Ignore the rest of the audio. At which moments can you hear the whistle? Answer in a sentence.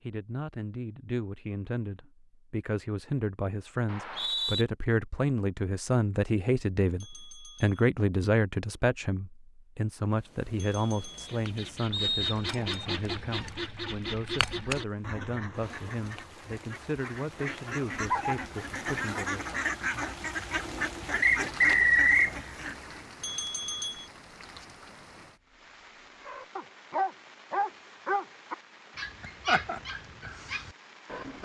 The whistle can be heard from 3.9 to 4.7 s, from 11.9 to 12.9 s and from 21.2 to 22.4 s.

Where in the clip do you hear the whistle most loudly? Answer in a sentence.
The volume of the whistle peaks at 22 seconds.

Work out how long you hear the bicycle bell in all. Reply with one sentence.
You can hear the bicycle bell for 3 seconds altogether.